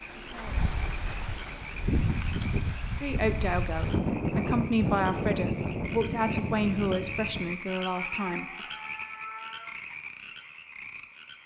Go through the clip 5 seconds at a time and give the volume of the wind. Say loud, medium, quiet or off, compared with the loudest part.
loud, loud, off.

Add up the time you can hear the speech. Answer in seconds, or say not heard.
6 s.